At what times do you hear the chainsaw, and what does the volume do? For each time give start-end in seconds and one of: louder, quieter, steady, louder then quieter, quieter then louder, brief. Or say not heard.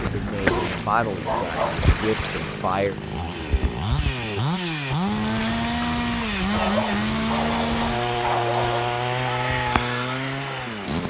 0.0-11.0 louder.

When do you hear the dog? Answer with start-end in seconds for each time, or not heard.
0.5-1.9, 6.5-8.8.